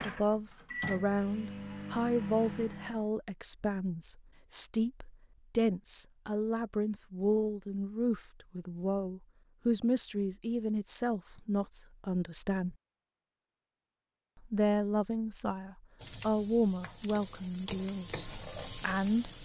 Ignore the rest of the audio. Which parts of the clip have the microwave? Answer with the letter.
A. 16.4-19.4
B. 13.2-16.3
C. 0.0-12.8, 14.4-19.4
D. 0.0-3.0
D.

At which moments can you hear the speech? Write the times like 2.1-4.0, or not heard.
0.0-12.8, 14.4-19.4.